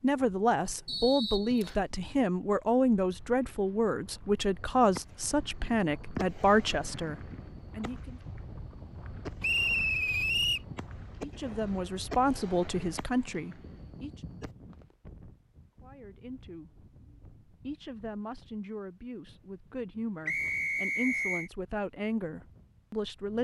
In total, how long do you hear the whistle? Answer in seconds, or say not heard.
3 s.